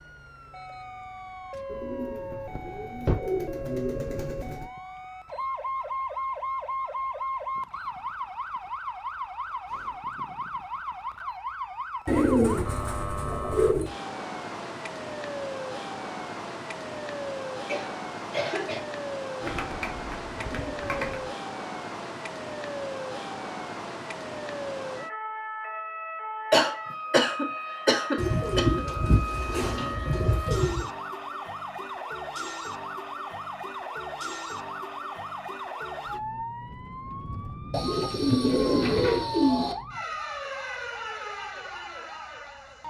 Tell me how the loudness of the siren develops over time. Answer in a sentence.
The volume of the siren stays about the same.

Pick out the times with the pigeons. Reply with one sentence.
The pigeons can be heard from 1.7 to 4.7 s, from 12.1 to 13.9 s, from 19.4 to 21.3 s, from 28.1 to 30.9 s and from 37.7 to 39.8 s.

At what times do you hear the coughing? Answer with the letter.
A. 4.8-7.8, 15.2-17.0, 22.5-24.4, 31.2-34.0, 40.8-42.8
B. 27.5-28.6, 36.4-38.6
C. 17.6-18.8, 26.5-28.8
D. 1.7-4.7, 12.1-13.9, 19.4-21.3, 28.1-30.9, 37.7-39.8
C.